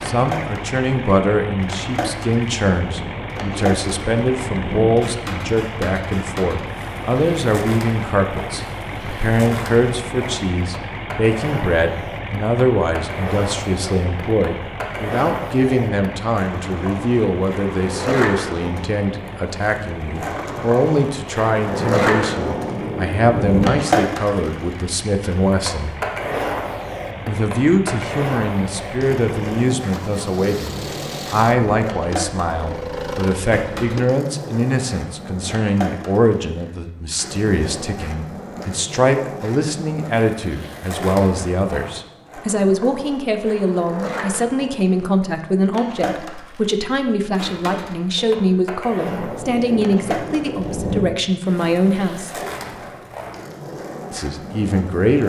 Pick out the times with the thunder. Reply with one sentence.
The thunder can be heard from 2.9 to 4.8 s, from 21.6 to 23.7 s and from 49.0 to 51.0 s.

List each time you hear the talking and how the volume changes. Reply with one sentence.
The talking can be heard from 0.0 to 25.9 s, at a steady volume; from 27.2 to 52.4 s, at a steady volume; and briefly from 54.1 to 55.2 s.